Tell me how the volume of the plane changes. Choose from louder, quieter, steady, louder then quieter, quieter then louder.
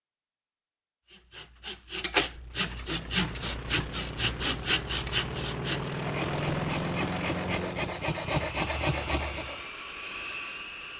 louder then quieter.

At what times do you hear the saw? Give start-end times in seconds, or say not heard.
1.1-9.7.